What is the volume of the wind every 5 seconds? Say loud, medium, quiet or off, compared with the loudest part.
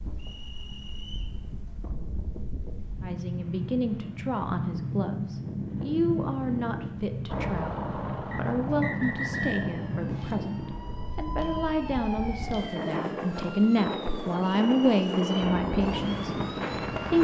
medium, loud, loud, loud.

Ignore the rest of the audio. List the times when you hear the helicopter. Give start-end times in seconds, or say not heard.
7.2-10.9, 15.3-17.1.